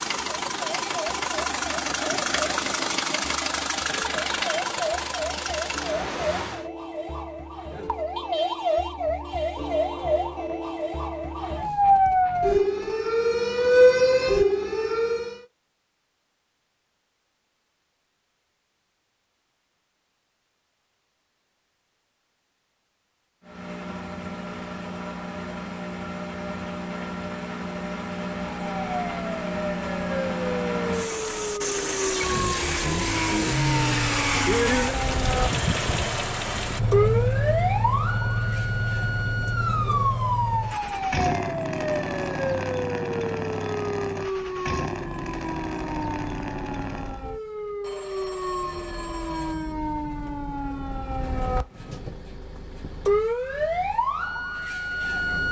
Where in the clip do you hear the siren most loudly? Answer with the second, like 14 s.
14 s.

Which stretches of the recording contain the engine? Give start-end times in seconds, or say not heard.
0.0-6.7, 23.4-47.2.